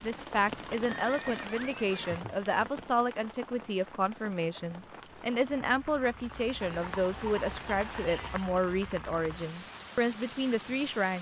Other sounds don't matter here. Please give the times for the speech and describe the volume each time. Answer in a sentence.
You can hear the speech from 0.0 to 11.1 s, at a steady volume.